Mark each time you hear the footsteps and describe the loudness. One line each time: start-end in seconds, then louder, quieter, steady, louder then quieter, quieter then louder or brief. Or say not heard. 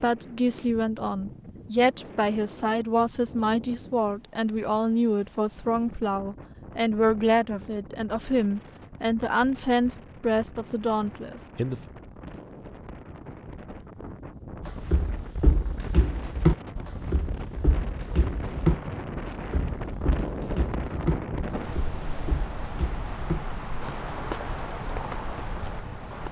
14.6-26.2 quieter.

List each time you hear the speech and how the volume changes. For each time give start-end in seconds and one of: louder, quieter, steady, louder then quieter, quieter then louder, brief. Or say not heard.
0.0-11.8 steady.